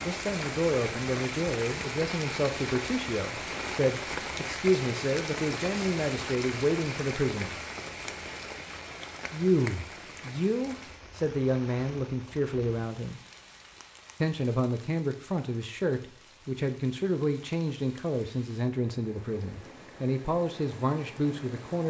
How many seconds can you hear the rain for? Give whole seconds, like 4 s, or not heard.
22 s.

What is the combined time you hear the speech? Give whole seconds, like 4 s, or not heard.
19 s.